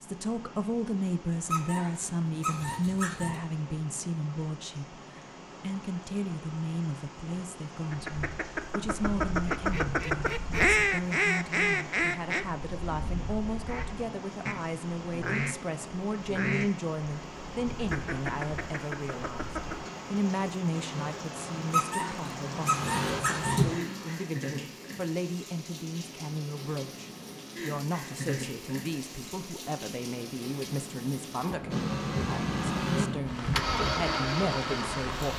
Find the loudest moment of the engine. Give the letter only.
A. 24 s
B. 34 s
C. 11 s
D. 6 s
B.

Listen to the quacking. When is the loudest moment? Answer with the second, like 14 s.
11 s.